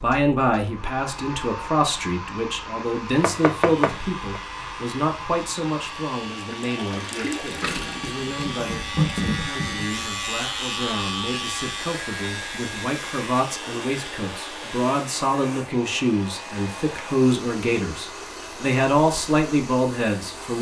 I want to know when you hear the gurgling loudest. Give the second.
9 s.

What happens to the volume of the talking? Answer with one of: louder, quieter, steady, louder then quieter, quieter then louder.
quieter then louder.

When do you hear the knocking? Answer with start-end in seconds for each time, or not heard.
3.2-4.4.